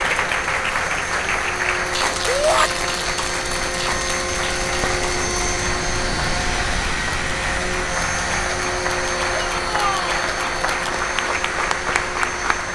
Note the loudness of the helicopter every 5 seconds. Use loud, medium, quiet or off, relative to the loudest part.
loud, loud, medium.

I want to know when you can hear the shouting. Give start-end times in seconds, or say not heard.
2.2-2.7, 9.3-10.2.